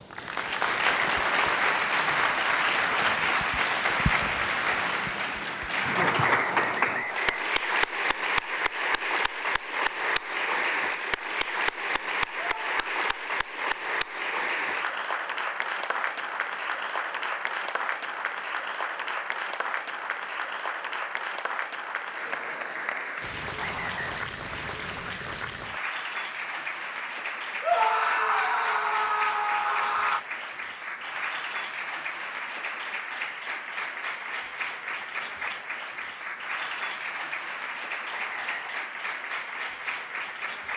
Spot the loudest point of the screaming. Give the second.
28 s.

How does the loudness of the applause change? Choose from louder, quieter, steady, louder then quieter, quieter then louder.
quieter.